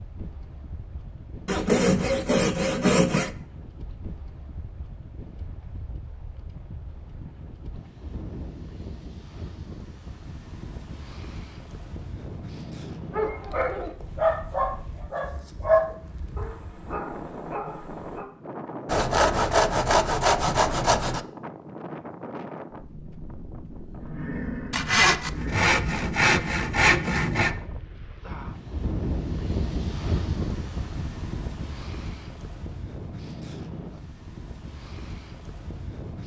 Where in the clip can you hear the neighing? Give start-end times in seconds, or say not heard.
24.0-25.6.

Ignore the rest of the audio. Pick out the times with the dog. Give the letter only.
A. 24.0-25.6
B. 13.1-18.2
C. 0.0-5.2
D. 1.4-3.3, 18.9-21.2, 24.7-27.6
B.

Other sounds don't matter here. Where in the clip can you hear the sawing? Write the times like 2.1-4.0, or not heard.
1.4-3.3, 18.9-21.2, 24.7-27.6.